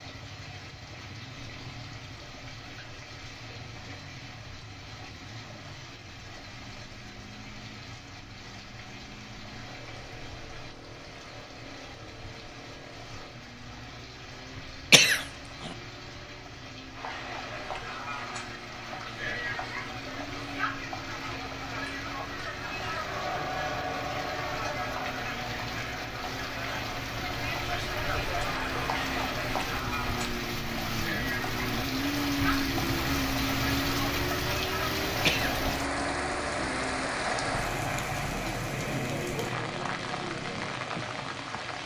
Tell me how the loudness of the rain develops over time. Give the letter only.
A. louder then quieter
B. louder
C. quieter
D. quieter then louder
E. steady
B.